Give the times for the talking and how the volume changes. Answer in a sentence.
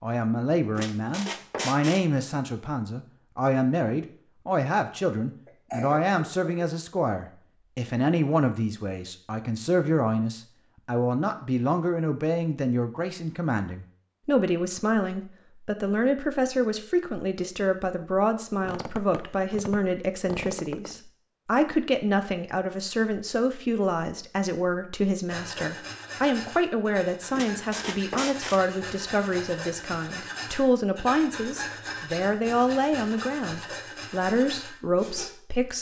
The talking can be heard from 0.0 to 35.7 s, at a steady volume.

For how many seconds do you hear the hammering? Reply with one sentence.
You can't hear the hammering here.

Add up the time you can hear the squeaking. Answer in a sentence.
The squeaking can be heard for 5 seconds in total.